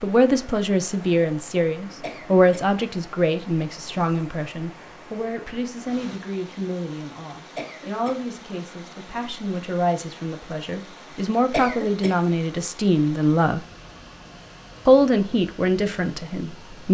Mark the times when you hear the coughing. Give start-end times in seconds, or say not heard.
2.0-2.6, 7.5-8.2, 11.5-12.2.